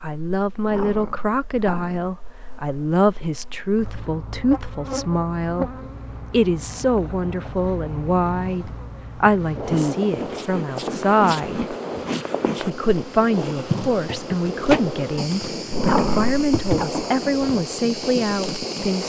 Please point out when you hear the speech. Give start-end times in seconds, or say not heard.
0.0-11.8, 12.6-19.0.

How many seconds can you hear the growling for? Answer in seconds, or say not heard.
3 s.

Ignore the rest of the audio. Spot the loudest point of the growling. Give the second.
16 s.